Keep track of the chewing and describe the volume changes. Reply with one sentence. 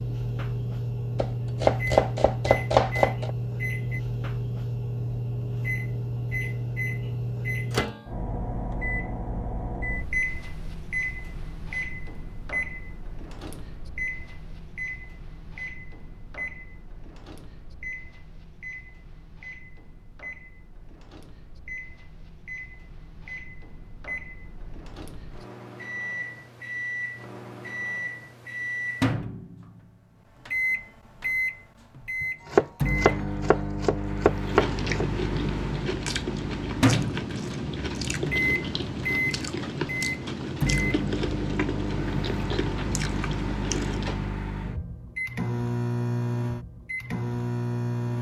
The loudness of the chewing stays about the same.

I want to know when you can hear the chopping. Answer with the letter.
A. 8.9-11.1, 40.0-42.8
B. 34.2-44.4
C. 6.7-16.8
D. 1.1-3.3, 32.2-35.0
D.